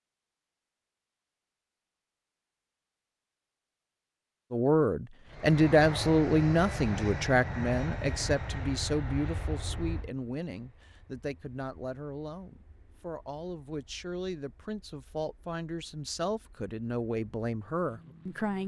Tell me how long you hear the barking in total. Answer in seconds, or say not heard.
not heard.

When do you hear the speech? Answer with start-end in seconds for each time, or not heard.
4.5-18.6.